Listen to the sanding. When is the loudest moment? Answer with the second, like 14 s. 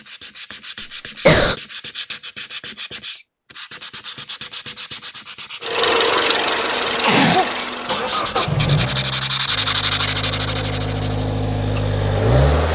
10 s.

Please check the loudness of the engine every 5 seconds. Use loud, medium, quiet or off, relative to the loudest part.
off, loud, loud.